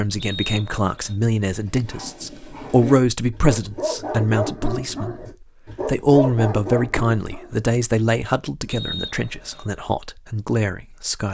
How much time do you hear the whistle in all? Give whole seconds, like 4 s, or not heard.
2 s.